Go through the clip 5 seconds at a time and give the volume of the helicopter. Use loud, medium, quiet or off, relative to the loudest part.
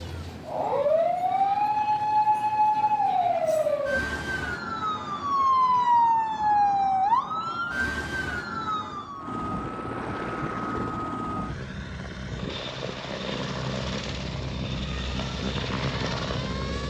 quiet, medium, loud, loud.